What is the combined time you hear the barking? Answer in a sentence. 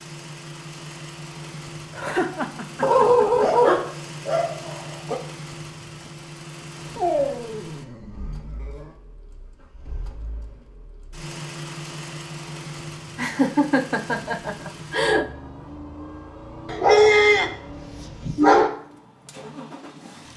The barking can be heard for 6 seconds in total.